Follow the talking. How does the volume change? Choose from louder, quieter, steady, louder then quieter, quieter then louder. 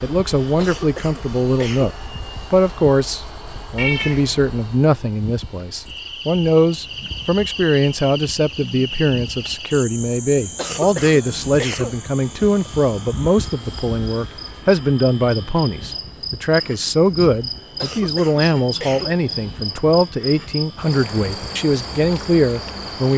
steady.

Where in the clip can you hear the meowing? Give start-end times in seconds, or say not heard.
3.8-4.3.